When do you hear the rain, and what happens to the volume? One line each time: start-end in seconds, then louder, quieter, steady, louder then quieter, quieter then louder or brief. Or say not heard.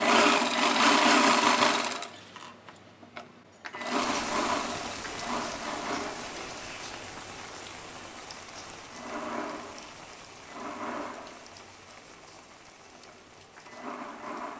4.0-14.5 quieter.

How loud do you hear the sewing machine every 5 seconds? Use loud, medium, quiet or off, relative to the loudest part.
loud, quiet, quiet.